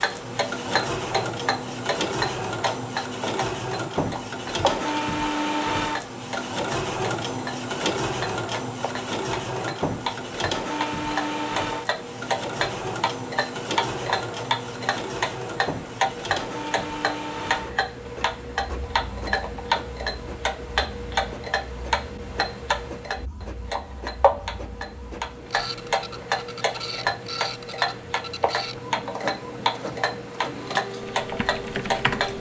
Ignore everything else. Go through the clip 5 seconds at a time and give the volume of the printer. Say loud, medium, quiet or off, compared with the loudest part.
loud, loud, loud, medium, quiet, medium, medium.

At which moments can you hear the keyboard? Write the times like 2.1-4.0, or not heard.
31.1-32.3.